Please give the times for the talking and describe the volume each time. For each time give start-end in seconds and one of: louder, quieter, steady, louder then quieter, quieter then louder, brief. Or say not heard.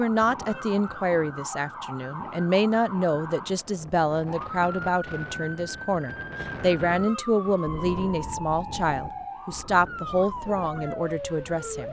0.0-11.8 steady.